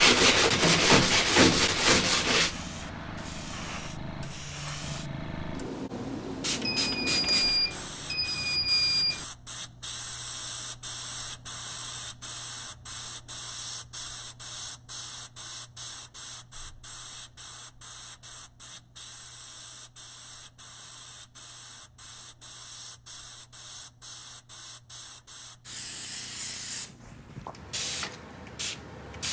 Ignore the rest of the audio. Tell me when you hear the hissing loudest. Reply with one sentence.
The loudest moment of the hissing is at 7 seconds.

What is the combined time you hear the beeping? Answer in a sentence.
You can hear the beeping for 3 seconds altogether.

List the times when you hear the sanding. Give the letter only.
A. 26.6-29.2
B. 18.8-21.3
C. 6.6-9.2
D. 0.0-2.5
D.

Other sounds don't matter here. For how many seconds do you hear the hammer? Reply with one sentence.
The hammer can't be heard in this clip.